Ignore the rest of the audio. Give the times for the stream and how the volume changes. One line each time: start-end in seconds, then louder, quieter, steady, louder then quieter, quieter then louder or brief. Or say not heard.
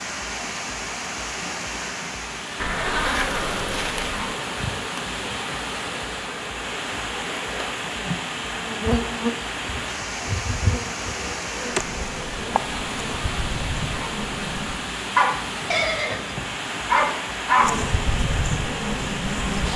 0.0-19.7 steady.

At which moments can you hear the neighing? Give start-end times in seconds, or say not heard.
2.6-4.3, 15.7-16.4.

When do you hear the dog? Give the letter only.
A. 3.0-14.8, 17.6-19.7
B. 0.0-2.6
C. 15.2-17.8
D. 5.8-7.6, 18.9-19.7
C.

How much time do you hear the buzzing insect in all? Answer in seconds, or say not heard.
14 s.